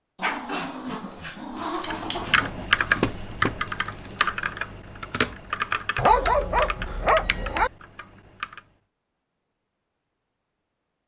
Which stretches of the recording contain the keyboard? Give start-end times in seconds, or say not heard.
1.9-8.7.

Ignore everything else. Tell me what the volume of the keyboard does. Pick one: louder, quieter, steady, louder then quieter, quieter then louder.
quieter.